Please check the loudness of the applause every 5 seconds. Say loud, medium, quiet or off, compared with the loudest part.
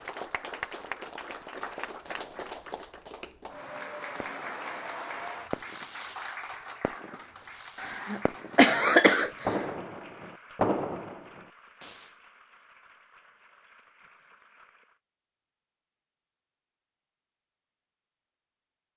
loud, loud, quiet, off.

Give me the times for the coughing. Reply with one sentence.
You can hear the coughing from 7.8 to 9.7 s.